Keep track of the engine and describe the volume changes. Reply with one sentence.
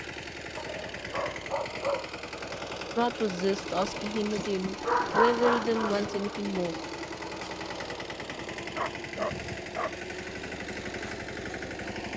The loudness of the engine stays about the same.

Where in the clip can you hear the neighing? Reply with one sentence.
The neighing can't be heard in this clip.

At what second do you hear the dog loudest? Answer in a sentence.
The loudest moment of the dog is at 5 seconds.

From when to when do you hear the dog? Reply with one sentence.
The dog can be heard from 0.6 to 2.2 s, from 4.3 to 6.4 s and from 8.6 to 9.9 s.